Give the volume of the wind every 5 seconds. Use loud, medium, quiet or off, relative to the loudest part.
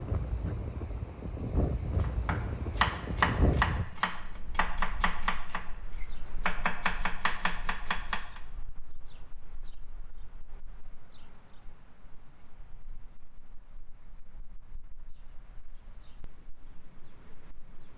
loud, quiet, quiet, quiet.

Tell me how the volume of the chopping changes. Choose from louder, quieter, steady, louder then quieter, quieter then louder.
quieter.